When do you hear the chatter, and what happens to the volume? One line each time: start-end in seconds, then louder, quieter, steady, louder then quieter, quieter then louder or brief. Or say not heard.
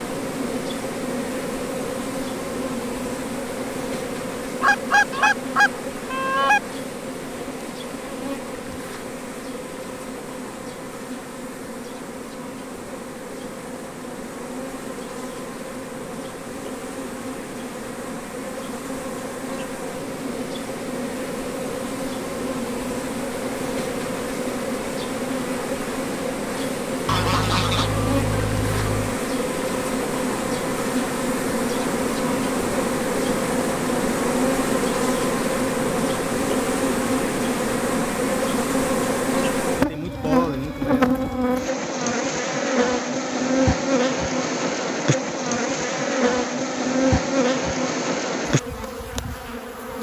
not heard.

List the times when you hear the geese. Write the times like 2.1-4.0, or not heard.
4.6-6.6, 27.1-29.1.